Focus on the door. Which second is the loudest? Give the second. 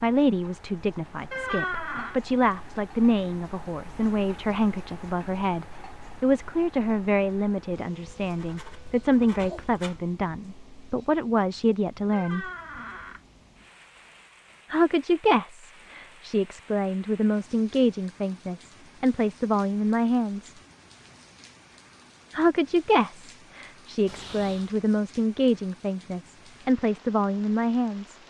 2 s.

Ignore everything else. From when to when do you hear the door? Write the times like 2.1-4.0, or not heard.
1.3-2.2, 12.1-13.2, 24.1-24.8.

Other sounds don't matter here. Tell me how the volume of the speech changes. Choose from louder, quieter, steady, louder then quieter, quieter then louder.
steady.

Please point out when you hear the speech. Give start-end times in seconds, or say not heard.
0.0-12.4, 14.7-20.6, 22.3-28.2.